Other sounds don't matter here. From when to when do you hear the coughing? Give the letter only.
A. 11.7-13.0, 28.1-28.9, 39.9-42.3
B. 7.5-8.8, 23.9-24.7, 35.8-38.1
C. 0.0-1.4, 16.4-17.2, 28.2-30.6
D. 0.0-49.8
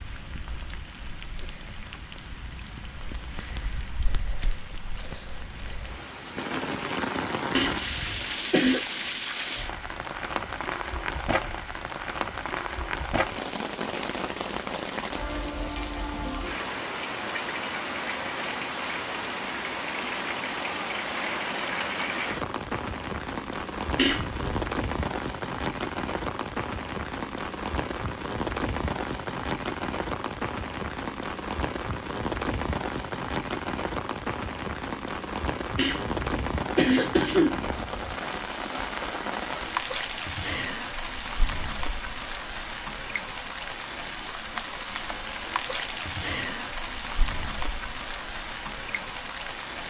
B.